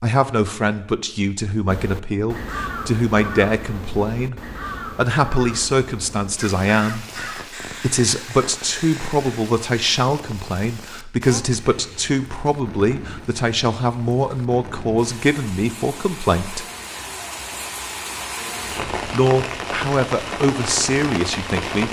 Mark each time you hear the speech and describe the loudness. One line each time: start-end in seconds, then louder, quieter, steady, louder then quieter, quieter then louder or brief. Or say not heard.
0.0-16.6 steady
19.1-21.8 brief.